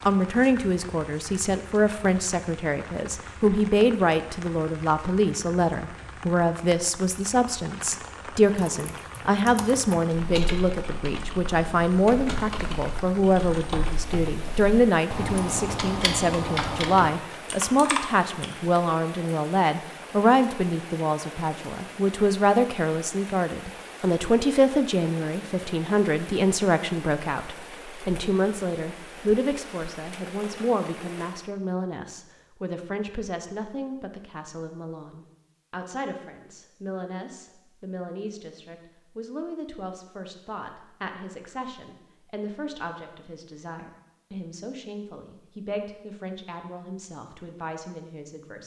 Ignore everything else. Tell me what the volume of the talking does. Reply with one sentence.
The volume of the talking goes down.